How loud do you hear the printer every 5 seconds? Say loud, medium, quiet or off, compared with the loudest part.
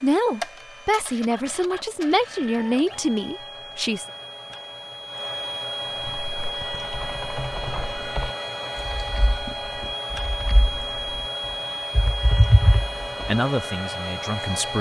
medium, loud, loud.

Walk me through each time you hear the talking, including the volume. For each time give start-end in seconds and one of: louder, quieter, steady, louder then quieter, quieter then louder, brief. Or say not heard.
0.0-4.0 steady
13.2-14.7 brief.